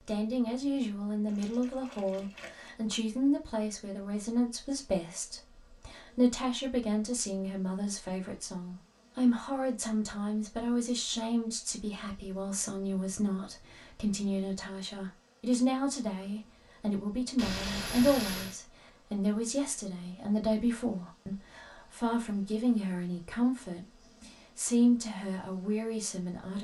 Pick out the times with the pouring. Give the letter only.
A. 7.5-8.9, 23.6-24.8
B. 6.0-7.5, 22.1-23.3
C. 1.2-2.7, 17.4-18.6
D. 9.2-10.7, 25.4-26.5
C.